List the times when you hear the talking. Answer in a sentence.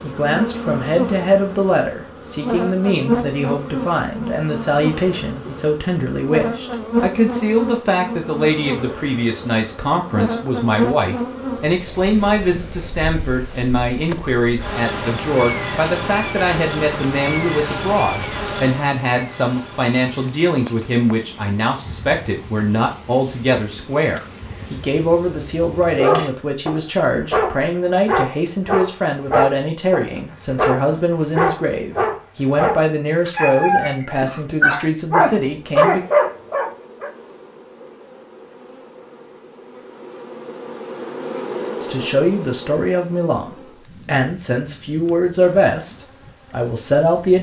You can hear the talking from 0.0 to 36.0 s and from 41.8 to 47.3 s.